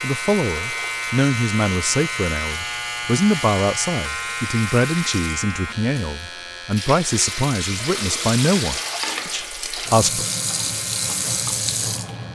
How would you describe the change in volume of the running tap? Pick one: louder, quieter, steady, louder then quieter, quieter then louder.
louder.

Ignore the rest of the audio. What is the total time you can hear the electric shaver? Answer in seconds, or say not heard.
12 s.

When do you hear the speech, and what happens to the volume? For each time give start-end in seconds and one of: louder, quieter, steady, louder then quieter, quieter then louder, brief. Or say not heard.
0.0-10.2 steady.